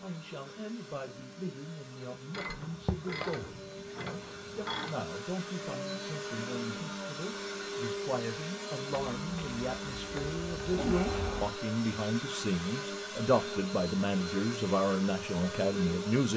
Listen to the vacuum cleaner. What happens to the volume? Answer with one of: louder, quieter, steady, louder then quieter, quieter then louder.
louder.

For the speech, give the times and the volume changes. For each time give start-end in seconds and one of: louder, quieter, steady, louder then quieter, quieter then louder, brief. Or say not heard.
0.0-16.3 louder.